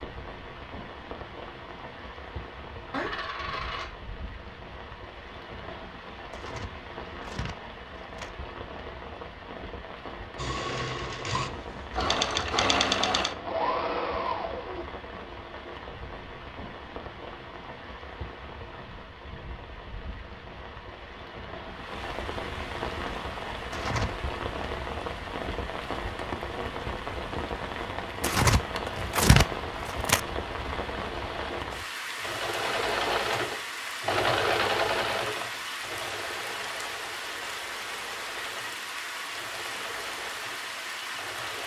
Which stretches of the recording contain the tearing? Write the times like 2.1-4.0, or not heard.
6.3-8.3, 23.7-24.1, 28.2-30.2.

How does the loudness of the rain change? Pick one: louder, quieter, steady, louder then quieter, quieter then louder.
louder.